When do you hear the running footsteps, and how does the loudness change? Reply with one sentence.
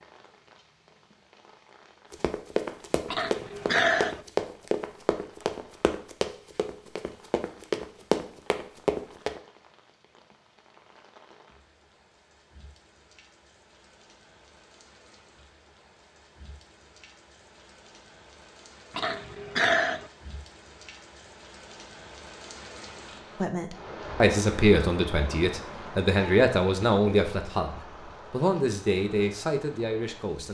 You can hear the running footsteps from 2.1 to 9.4 s, getting quieter then louder.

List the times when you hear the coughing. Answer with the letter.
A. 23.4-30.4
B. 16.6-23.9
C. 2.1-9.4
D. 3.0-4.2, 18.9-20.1
D.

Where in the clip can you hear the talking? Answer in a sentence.
You can hear the talking from 23.4 to 30.4 s.